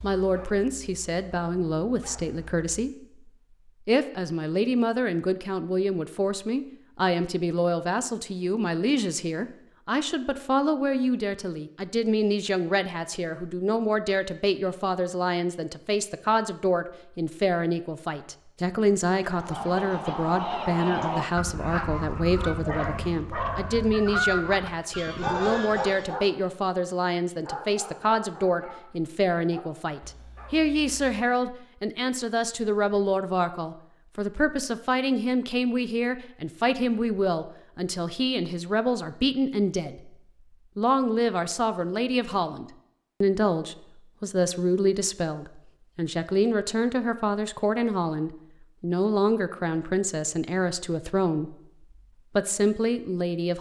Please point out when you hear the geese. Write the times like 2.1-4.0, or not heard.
19.2-26.1.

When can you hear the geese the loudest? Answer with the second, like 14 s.
24 s.